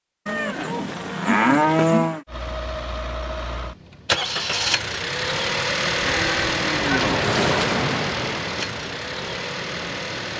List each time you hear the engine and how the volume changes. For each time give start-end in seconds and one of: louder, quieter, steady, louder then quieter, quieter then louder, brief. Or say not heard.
2.2-10.3 louder then quieter.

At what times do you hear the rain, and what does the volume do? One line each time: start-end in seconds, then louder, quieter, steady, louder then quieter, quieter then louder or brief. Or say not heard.
5.2-10.3 louder then quieter.